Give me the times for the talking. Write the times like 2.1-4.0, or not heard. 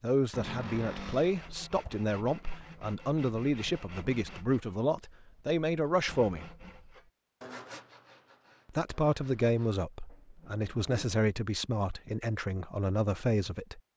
0.0-6.5, 8.7-13.8.